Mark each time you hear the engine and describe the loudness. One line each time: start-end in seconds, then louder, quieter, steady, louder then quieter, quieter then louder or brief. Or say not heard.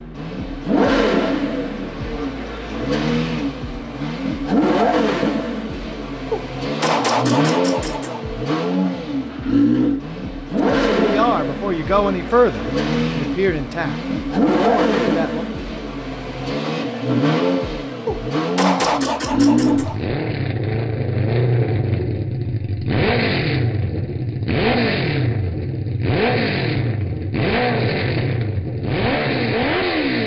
0.0-30.2 steady.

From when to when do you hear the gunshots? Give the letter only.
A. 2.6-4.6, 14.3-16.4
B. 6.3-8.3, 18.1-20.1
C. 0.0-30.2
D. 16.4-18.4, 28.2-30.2
B.